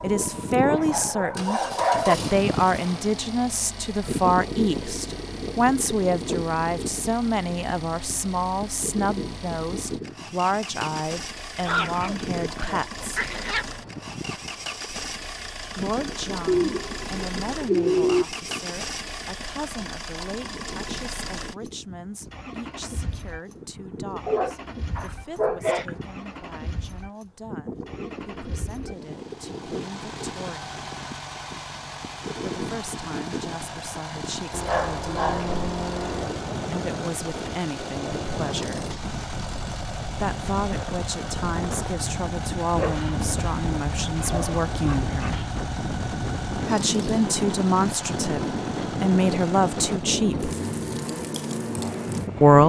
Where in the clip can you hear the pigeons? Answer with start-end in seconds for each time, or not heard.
16.4-18.2.